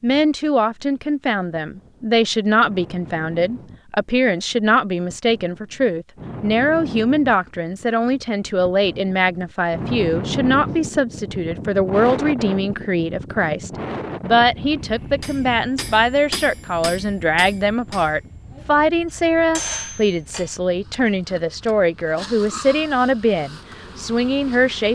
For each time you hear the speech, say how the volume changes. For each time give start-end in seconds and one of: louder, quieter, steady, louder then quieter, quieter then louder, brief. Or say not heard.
0.0-24.9 steady.